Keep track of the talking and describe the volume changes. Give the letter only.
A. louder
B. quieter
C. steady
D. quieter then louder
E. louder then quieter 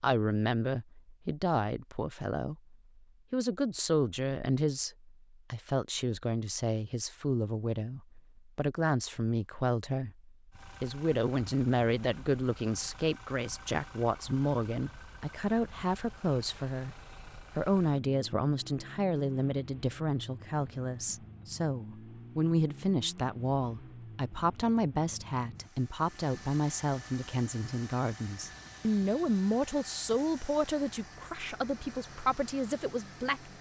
C.